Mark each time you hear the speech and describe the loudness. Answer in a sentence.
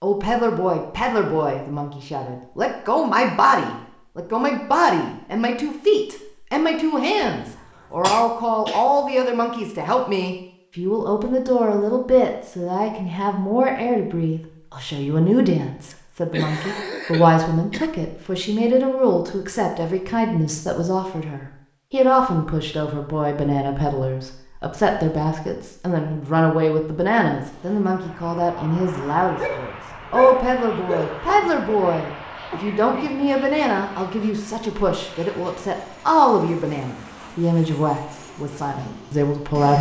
The speech can be heard from 0.0 to 39.7 s, at a steady volume.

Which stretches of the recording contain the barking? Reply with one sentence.
The barking can be heard from 29.4 to 31.8 s.